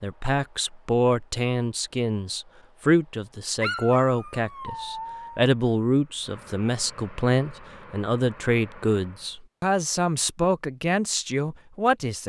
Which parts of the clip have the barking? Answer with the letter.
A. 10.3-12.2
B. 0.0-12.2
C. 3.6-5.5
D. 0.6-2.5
C.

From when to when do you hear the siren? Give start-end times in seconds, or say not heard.
not heard.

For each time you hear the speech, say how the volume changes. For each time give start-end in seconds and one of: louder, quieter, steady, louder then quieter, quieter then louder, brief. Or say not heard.
0.0-12.2 steady.